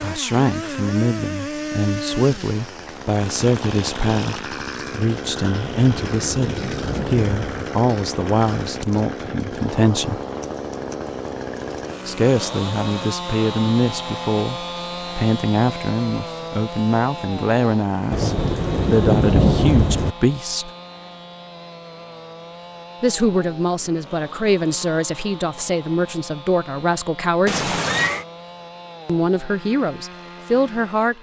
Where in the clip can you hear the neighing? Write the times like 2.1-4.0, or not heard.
27.4-28.2.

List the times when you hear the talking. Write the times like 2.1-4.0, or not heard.
0.0-10.2, 12.1-20.7, 23.0-27.7, 29.1-31.1.